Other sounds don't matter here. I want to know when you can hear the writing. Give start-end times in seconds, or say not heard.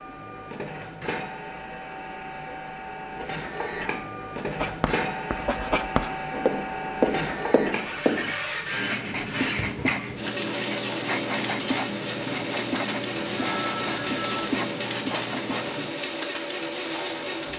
4.3-15.9.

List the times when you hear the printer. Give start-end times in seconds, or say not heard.
0.0-17.5.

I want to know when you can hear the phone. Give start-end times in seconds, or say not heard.
13.2-14.6.